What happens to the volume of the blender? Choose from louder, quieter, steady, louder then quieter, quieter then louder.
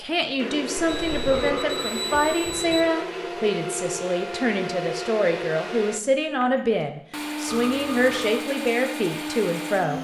steady.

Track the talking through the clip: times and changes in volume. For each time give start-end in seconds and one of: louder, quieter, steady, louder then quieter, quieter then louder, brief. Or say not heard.
0.0-9.9 steady.